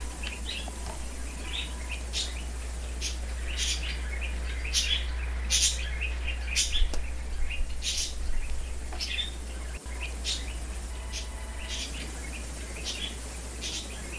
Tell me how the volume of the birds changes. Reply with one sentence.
The volume of the birds goes up, then down.